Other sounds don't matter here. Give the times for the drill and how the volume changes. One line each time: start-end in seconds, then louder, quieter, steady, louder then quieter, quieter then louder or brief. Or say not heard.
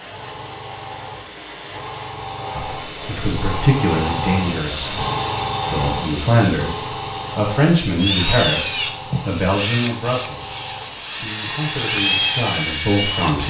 8.0-13.4 quieter then louder.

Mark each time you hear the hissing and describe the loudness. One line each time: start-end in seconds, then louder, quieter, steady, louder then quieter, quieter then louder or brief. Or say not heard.
0.0-13.4 louder then quieter.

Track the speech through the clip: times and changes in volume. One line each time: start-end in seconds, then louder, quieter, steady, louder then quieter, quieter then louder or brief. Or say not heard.
2.5-5.0 brief
5.7-13.4 quieter then louder.